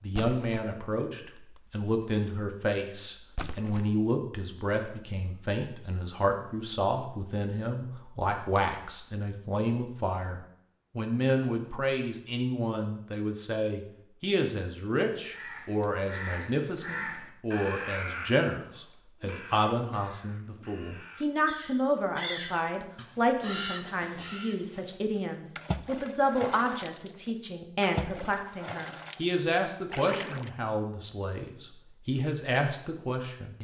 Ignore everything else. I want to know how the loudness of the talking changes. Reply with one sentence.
The volume of the talking stays about the same.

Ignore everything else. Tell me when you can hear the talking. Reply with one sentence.
The talking can be heard from 0.0 to 33.5 s.